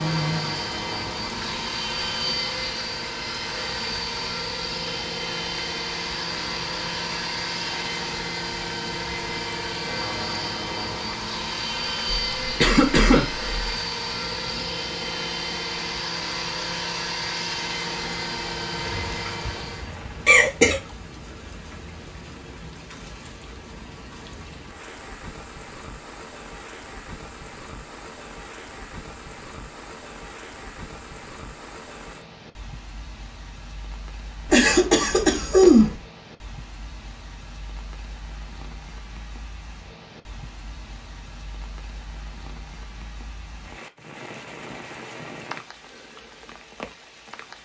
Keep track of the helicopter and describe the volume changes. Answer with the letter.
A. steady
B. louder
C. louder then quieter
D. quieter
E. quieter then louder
A.